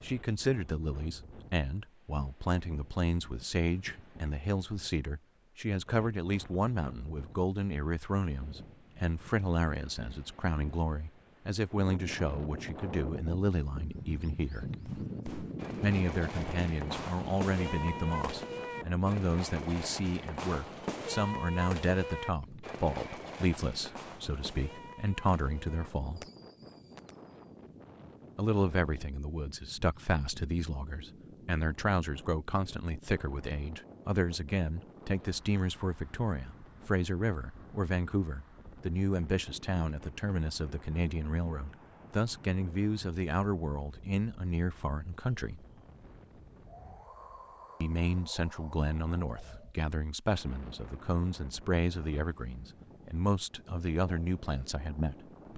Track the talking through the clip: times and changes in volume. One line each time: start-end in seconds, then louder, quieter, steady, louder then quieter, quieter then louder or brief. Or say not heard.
0.0-14.7 steady
15.8-26.2 steady
28.4-45.6 steady
47.8-55.5 steady.